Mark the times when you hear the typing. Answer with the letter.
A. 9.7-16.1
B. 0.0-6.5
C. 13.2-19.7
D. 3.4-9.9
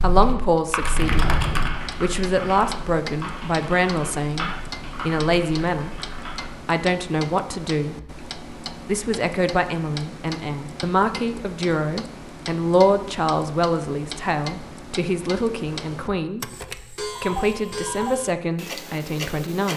B.